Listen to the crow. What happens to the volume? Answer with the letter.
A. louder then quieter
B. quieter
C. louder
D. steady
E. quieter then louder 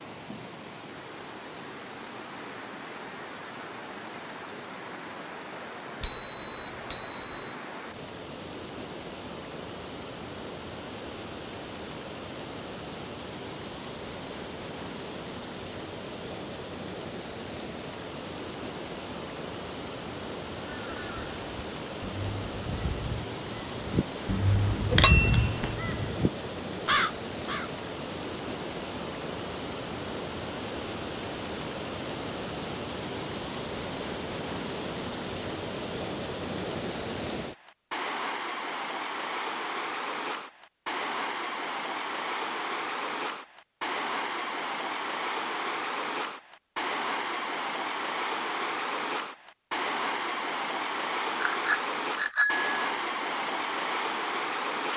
C.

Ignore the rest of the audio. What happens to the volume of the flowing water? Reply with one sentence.
The volume of the flowing water goes up.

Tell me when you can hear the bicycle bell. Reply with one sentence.
The bicycle bell can be heard from 6.0 to 7.5 s, from 24.9 to 25.7 s and from 51.4 to 53.0 s.